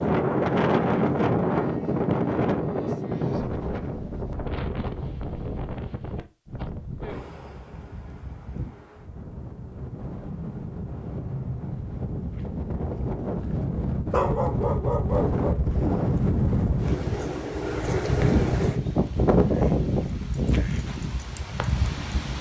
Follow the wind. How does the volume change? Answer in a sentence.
The loudness of the wind goes down, then up.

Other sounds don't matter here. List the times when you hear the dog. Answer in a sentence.
The dog can be heard from 14.1 to 15.6 s.